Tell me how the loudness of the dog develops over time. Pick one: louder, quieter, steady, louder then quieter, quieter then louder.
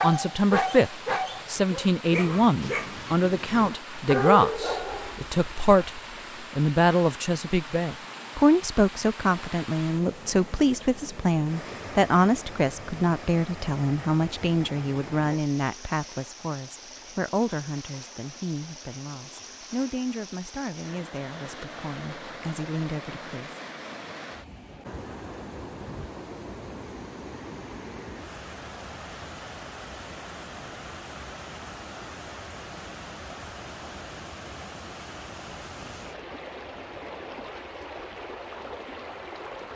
quieter then louder.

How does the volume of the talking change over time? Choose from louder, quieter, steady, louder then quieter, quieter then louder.
quieter.